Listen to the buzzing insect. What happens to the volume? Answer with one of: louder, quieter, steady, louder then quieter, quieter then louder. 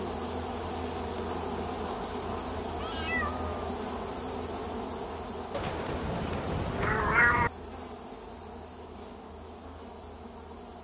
quieter.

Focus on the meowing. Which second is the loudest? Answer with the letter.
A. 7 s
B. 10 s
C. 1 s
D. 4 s
A.